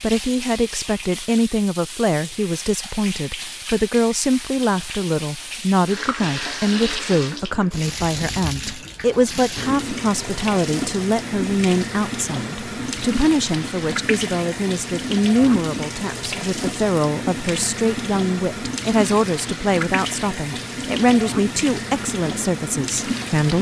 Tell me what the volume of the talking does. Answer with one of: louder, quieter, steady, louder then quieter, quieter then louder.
steady.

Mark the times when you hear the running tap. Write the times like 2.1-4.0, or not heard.
0.0-23.5.